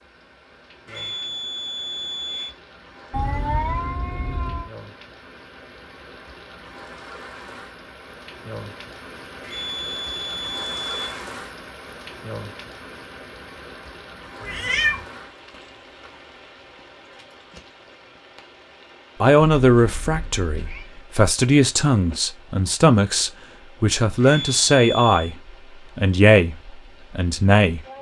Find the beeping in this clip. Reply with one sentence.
You can hear the beeping from 0.8 to 2.5 s, from 9.4 to 11.2 s and from 24.2 to 25.4 s.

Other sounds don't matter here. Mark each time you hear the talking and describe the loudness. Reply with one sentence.
You can hear the talking from 19.2 to 27.8 s, at a steady volume.